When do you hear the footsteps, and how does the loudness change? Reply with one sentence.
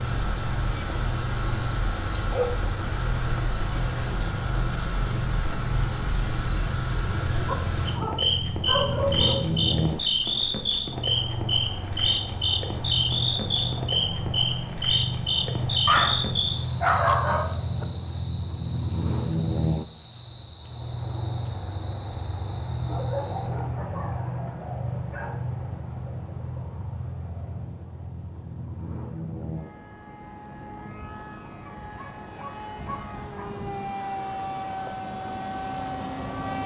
The footsteps can't be heard in this clip.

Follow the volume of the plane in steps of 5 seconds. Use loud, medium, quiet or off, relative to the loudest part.
loud, loud, loud, loud, loud, medium, medium, loud.